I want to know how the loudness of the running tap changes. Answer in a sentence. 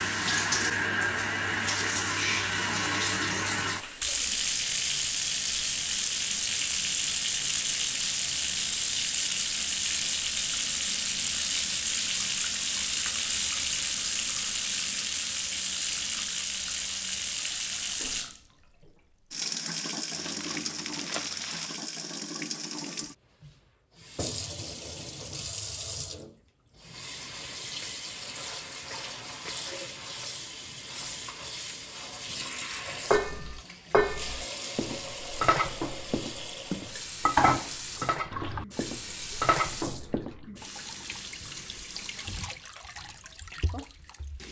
The loudness of the running tap goes down.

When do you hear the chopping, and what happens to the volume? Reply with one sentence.
The chopping can't be heard in this clip.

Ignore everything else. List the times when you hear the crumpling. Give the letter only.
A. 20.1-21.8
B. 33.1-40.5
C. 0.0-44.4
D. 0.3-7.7
A.